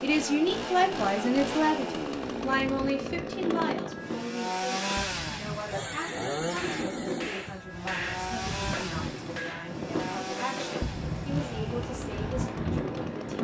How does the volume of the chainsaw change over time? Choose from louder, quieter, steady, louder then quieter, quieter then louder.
quieter.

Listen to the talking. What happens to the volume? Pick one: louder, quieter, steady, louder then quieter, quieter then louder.
quieter.